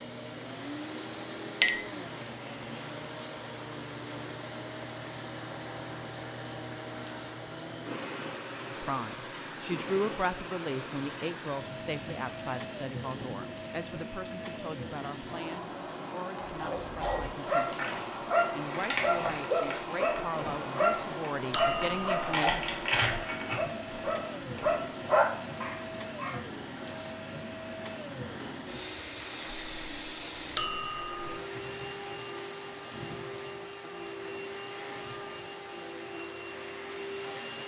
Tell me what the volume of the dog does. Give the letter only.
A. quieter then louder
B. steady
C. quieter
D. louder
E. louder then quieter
B.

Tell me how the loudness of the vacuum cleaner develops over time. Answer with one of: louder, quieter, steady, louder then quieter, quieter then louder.
steady.